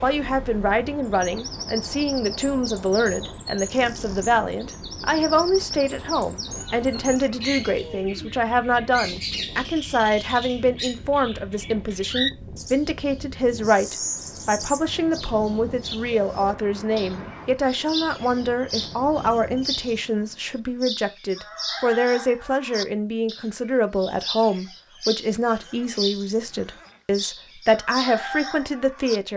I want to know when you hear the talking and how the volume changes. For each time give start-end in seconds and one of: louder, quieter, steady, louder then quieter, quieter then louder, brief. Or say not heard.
0.0-29.3 steady.